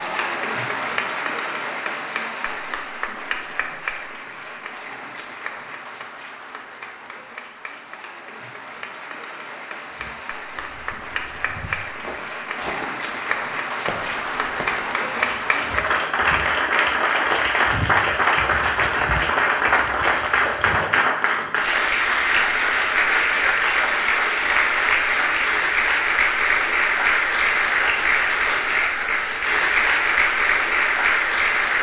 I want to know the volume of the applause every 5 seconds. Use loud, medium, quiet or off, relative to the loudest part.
medium, quiet, medium, loud, loud, loud, loud.